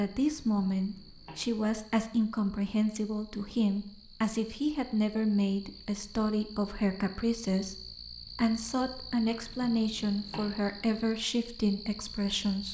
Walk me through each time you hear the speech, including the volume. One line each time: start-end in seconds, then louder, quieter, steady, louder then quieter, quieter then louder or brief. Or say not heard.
0.0-12.6 steady.